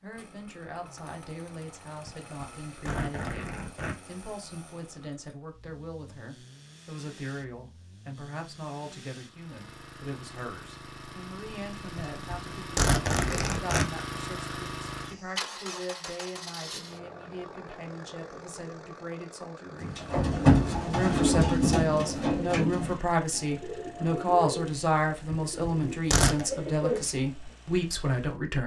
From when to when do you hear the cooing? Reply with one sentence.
You can hear the cooing from 19.8 to 27.1 s.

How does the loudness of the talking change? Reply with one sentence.
The volume of the talking goes up.